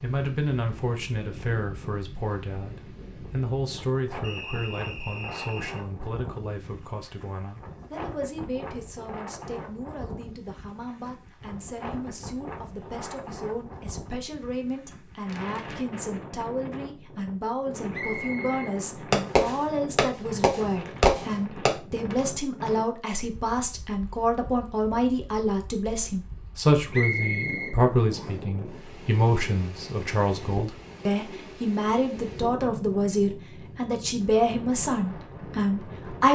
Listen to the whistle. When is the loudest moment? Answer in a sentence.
The loudest moment of the whistle is at 27 seconds.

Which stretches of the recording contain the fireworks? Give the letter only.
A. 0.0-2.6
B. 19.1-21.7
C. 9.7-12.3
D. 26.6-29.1
B.